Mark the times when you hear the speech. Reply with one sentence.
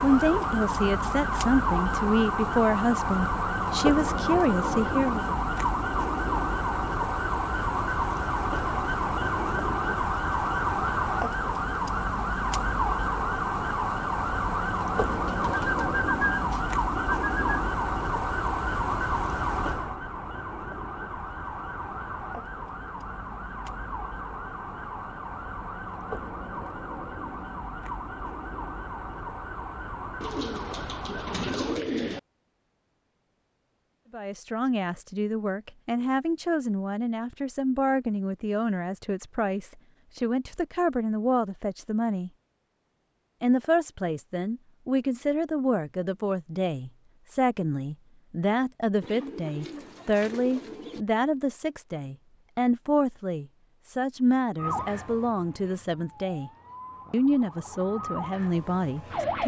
The speech can be heard from 0.0 to 5.3 s, from 34.1 to 42.3 s, from 43.4 to 56.5 s and from 57.1 to 59.4 s.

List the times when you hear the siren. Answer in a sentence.
You can hear the siren from 0.0 to 31.9 s and from 54.5 to 59.4 s.